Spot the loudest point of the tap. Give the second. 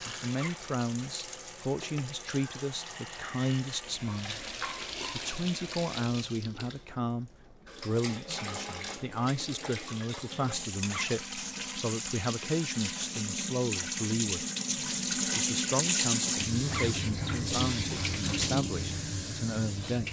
16 s.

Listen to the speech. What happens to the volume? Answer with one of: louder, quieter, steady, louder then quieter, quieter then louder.
steady.